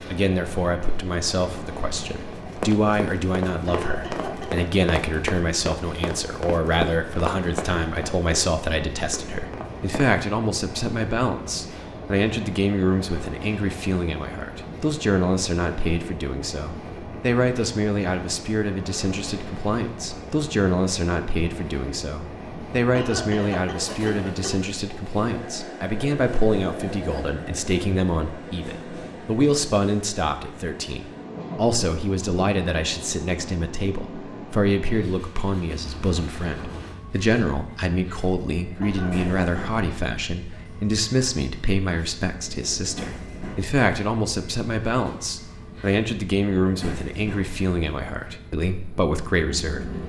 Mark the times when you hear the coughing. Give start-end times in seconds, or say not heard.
3.6-4.7, 22.9-24.7, 38.8-39.8.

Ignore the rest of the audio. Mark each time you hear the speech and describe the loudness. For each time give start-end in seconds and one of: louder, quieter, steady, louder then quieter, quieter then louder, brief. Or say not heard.
0.1-50.0 steady.